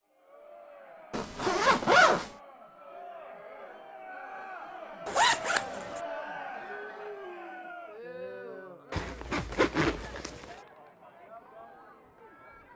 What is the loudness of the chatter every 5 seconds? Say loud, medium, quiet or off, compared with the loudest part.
medium, loud, medium.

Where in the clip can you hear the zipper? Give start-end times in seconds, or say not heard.
1.1-2.3, 5.0-6.0, 8.9-10.6.